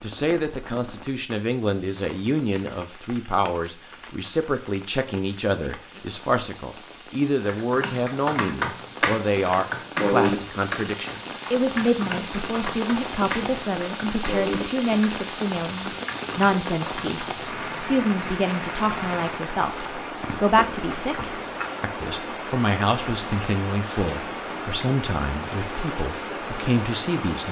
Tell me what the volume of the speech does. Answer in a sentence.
The loudness of the speech stays about the same.